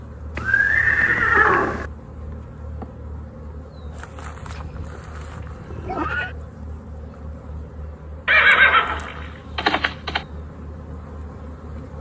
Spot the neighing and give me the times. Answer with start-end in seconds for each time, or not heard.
0.3-1.9, 4.4-6.3, 8.2-10.2.